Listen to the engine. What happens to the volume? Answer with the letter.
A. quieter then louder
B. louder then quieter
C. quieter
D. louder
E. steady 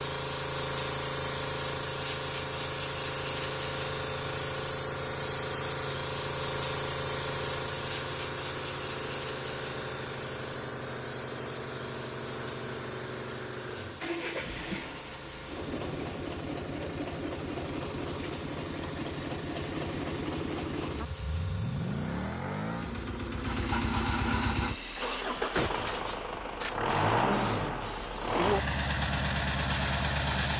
D.